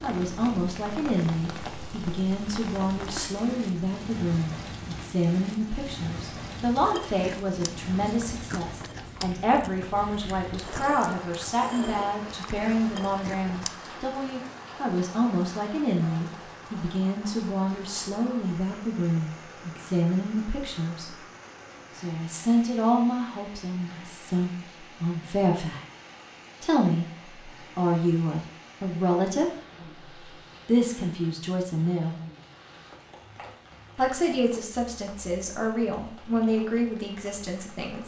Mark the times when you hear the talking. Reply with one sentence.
You can hear the talking from 0.0 to 21.1 s, from 21.9 to 25.8 s, from 26.6 to 29.5 s, from 30.6 to 32.1 s and from 34.0 to 38.0 s.